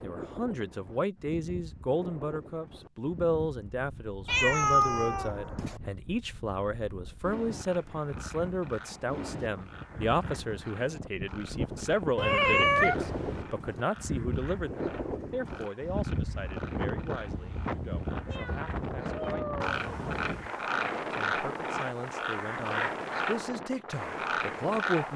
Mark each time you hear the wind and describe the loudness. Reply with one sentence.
The wind can be heard from 0.0 to 25.1 s, getting louder.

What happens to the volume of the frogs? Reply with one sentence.
The volume of the frogs goes up.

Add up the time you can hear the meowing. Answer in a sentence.
You can hear the meowing for 4 seconds altogether.